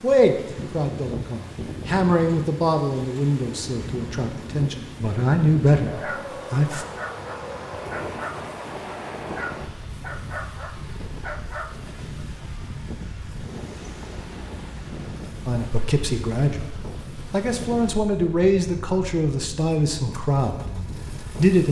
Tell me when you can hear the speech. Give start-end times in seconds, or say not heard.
0.0-6.8, 15.4-21.6.